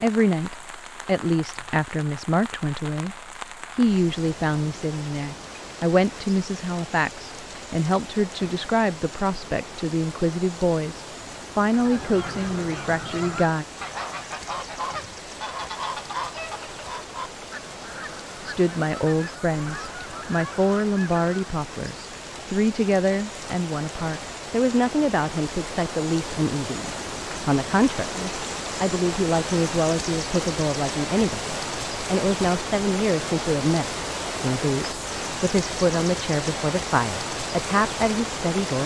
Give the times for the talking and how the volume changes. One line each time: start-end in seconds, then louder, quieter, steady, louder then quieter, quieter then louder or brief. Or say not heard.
0.0-13.7 steady
18.4-38.8 steady.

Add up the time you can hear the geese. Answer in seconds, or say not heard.
10 s.